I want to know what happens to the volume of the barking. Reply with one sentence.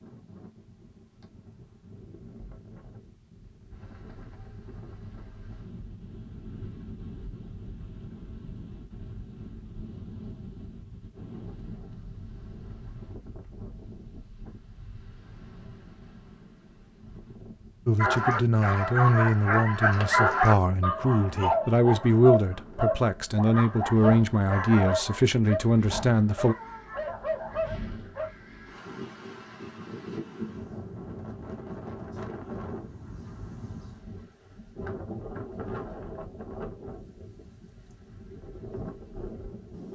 The loudness of the barking goes down.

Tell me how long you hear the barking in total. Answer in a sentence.
You can hear the barking for 10 seconds altogether.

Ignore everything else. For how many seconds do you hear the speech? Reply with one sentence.
The speech can be heard for 9 seconds in total.